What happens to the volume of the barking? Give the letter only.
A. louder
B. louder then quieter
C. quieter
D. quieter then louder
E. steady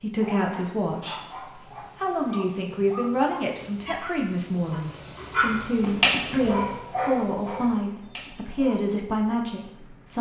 B.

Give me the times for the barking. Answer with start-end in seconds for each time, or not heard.
0.2-8.8.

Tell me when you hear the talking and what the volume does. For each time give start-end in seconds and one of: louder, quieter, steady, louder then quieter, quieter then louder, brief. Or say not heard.
0.0-10.1 steady.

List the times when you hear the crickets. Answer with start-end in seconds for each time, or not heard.
not heard.